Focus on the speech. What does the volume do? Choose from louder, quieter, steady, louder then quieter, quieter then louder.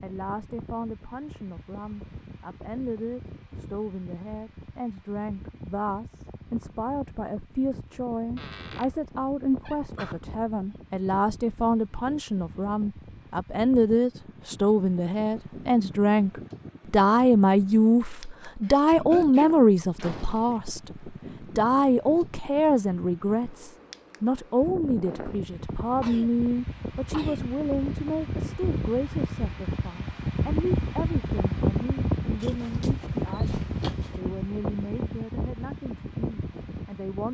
louder then quieter.